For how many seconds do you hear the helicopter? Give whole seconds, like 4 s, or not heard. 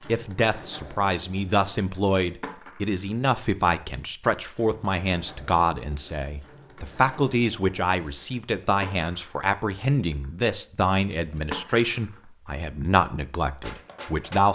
not heard.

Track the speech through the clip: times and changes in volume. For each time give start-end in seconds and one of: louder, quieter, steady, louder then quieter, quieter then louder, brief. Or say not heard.
0.1-14.5 steady.